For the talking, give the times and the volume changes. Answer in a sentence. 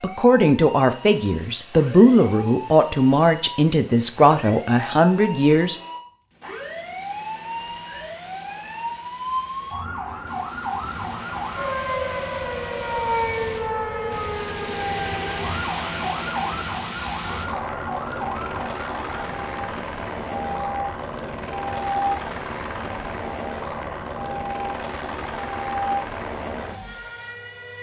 You can hear the talking from 0.0 to 5.8 s, at a steady volume.